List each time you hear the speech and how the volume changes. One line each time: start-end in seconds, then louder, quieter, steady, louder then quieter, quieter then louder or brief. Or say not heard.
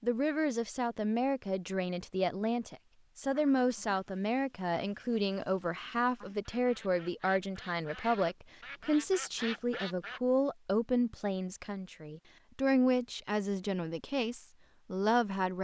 0.0-15.5 steady.